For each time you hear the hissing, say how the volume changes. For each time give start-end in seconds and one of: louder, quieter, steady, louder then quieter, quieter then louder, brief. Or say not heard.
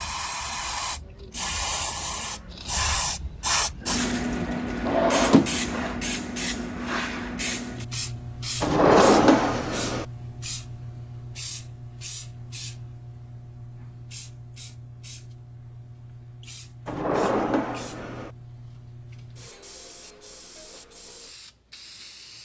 0.0-22.3 quieter.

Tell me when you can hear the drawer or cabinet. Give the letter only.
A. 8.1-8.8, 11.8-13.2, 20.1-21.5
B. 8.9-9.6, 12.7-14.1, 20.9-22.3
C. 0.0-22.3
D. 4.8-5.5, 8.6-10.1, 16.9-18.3
D.